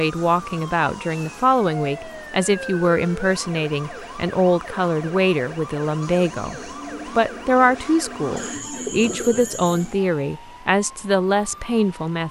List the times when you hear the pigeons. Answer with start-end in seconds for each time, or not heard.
8.3-9.9.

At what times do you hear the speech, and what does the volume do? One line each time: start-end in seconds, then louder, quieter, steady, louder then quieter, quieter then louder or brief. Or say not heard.
0.0-12.2 steady.